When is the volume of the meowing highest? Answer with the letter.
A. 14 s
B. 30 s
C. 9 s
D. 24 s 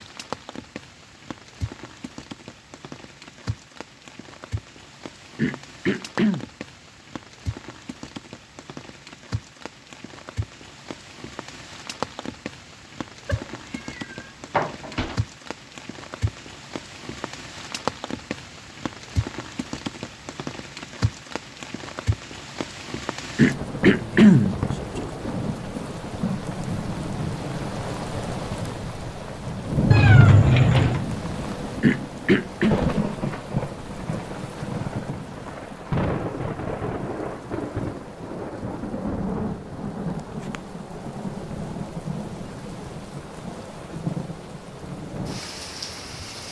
B.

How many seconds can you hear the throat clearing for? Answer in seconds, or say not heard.
3 s.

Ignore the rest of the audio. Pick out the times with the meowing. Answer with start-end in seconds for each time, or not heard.
13.2-15.2, 29.9-31.1.